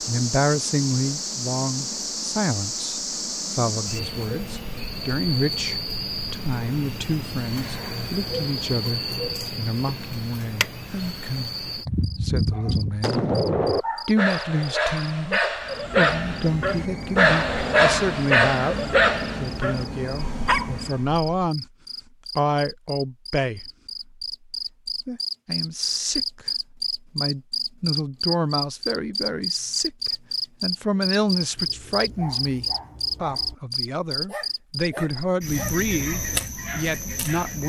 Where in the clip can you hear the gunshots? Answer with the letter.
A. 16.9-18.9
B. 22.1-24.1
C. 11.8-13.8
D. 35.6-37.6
C.